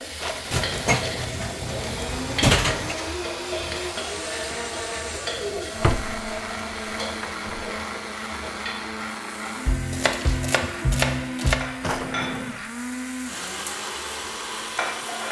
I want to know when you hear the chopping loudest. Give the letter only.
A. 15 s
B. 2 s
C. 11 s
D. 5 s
C.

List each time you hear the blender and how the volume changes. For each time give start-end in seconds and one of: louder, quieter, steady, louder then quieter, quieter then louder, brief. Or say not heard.
0.0-15.2 steady.